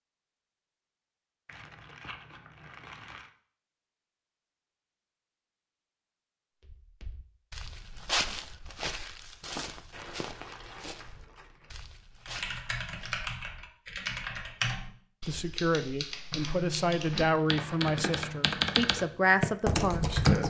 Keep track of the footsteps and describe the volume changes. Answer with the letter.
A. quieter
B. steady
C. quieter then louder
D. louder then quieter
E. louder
A.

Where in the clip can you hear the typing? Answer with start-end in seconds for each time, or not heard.
12.2-20.4.